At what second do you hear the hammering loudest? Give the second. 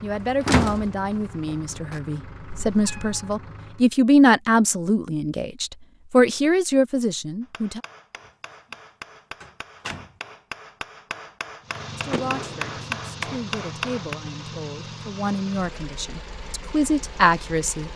13 s.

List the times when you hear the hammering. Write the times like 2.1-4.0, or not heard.
7.4-14.2.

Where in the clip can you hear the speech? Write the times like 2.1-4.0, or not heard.
0.0-7.8, 11.9-17.9.